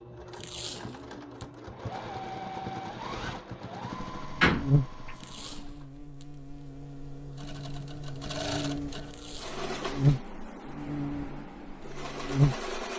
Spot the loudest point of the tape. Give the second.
1 s.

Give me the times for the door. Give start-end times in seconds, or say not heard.
4.4-5.2.